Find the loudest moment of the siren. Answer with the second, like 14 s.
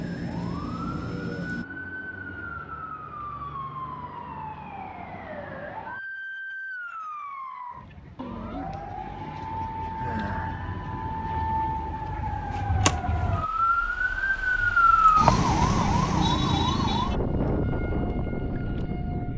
15 s.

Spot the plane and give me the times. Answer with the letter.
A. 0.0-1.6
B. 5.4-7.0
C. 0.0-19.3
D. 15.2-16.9
A.